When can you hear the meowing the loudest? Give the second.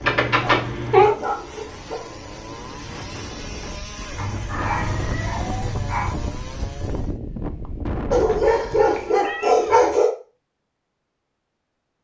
1 s.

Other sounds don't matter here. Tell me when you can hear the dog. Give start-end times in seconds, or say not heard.
0.4-1.9, 4.2-6.2, 8.1-10.1.